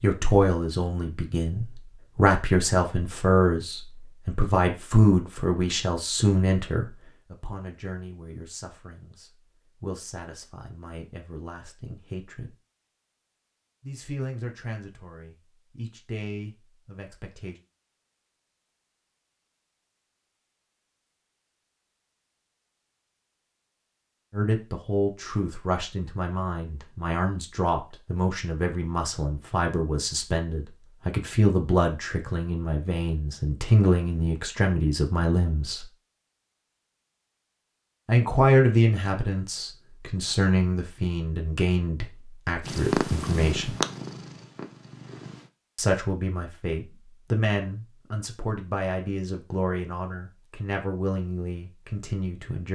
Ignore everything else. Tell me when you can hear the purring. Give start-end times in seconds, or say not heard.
42.6-45.5.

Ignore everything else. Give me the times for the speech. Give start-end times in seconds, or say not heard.
0.0-12.6, 13.8-17.6, 24.3-35.9, 38.0-43.8, 45.8-52.6.